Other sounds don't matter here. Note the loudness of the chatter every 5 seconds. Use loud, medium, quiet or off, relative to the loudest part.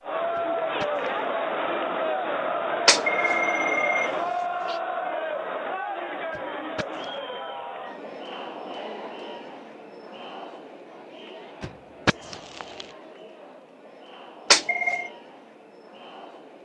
loud, medium, quiet, quiet.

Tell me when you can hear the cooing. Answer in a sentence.
You can't hear the cooing here.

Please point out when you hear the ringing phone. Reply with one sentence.
You can hear the ringing phone from 2.9 to 4.8 s and from 14.5 to 15.1 s.